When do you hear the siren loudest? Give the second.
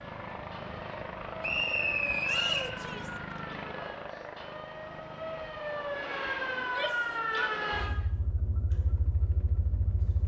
7 s.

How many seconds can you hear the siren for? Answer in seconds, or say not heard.
10 s.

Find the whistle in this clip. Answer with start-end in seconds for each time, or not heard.
1.4-2.7.